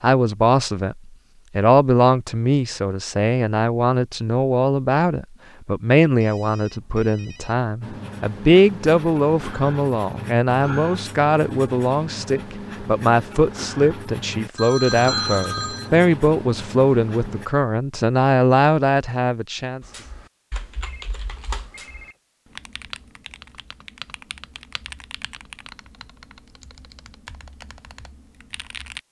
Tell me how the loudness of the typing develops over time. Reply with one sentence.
The loudness of the typing goes down.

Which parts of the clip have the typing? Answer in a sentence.
You can hear the typing from 19.8 to 29.0 s.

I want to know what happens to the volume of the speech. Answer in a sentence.
The loudness of the speech stays about the same.